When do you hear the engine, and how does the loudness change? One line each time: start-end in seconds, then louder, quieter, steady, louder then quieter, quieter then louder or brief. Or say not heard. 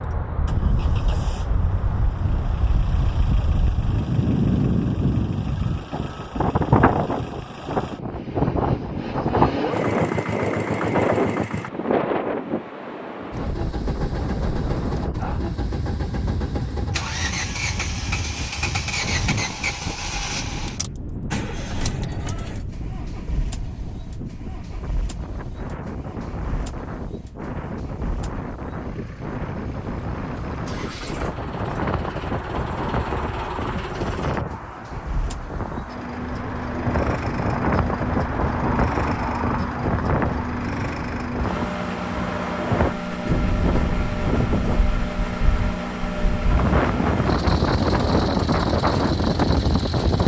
0.0-11.7 louder
13.3-50.2 quieter then louder.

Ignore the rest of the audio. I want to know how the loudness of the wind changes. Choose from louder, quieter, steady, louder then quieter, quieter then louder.
quieter then louder.